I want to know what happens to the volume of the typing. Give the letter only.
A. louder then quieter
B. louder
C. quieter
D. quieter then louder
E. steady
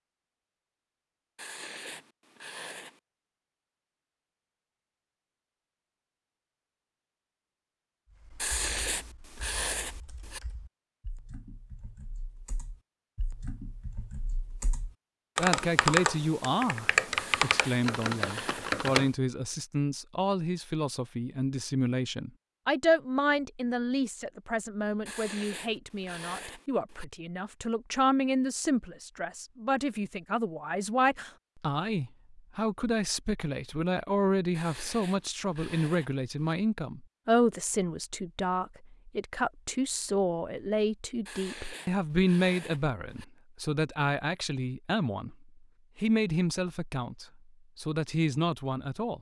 B.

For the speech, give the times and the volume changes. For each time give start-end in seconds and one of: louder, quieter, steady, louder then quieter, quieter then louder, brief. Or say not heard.
15.3-49.1 steady.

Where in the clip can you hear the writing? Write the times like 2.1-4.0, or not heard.
1.4-3.0, 8.3-10.4, 17.1-18.8, 25.1-27.1, 34.5-36.5, 41.2-43.2.